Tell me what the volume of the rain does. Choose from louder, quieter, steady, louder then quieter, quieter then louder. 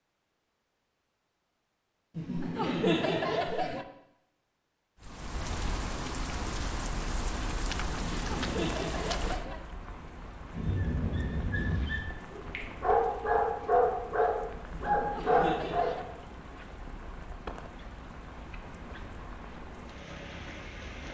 quieter.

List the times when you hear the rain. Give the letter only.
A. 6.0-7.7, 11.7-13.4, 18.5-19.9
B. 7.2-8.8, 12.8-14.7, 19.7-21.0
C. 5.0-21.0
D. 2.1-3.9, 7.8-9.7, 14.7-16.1
C.